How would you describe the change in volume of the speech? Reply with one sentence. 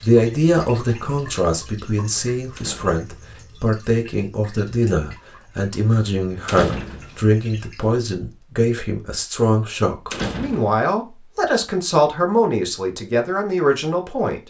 The volume of the speech stays about the same.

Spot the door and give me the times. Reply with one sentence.
You can hear the door from 2.5 to 3.2 s, from 6.5 to 7.2 s and from 10.1 to 10.8 s.